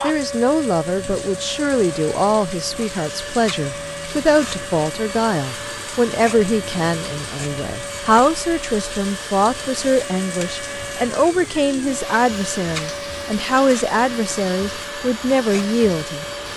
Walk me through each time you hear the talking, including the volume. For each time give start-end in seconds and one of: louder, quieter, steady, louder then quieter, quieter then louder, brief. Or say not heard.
0.0-16.2 steady.